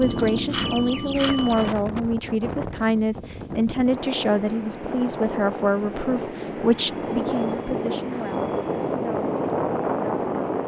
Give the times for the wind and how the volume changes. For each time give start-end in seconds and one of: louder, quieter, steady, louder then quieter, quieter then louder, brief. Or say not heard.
0.0-10.6 louder.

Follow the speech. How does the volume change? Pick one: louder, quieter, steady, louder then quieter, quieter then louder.
quieter.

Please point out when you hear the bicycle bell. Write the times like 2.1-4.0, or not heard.
0.0-1.7, 6.5-8.9.